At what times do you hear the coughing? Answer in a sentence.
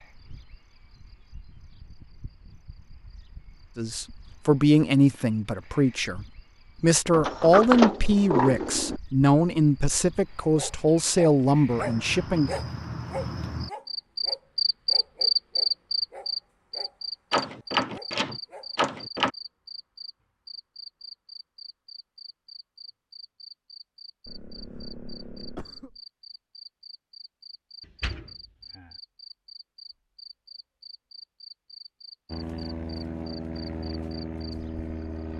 The coughing can be heard from 24.2 to 26.0 s.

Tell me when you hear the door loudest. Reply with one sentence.
The loudest moment of the door is at 8 seconds.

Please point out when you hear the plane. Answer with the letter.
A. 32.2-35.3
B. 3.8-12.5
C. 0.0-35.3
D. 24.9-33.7
A.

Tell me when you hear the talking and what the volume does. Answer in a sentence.
The talking can be heard from 3.8 to 12.5 s, at a steady volume.